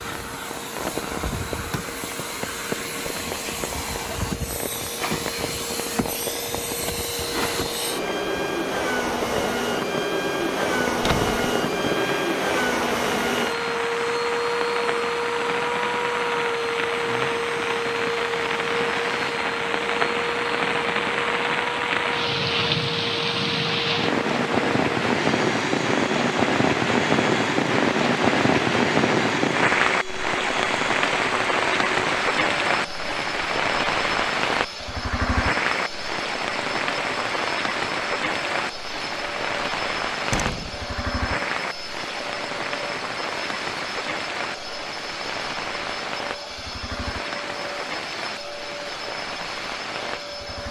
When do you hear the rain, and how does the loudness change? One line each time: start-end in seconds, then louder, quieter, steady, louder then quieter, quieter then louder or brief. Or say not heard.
0.0-50.6 louder then quieter.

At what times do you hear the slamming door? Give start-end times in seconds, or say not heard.
10.9-11.3, 40.3-40.8.